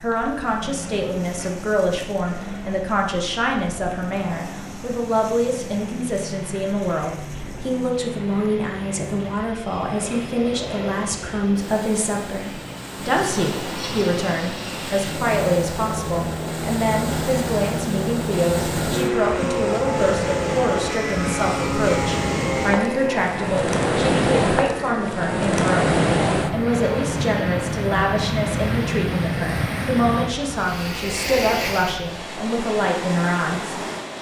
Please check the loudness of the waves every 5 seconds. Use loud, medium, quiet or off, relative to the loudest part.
quiet, quiet, quiet, medium, loud, loud, medium.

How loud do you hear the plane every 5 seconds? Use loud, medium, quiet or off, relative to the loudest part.
medium, medium, medium, loud, loud, medium, medium.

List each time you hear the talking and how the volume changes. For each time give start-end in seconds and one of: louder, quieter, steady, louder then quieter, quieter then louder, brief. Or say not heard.
0.0-33.8 steady.